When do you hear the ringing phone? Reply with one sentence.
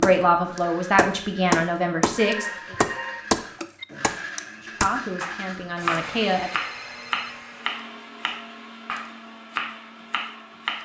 You can hear the ringing phone from 2.1 to 3.9 s and from 6.5 to 7.5 s.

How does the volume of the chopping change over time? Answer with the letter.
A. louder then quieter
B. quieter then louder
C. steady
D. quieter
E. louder
D.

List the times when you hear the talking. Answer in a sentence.
The talking can be heard from 0.0 to 2.8 s and from 4.8 to 6.5 s.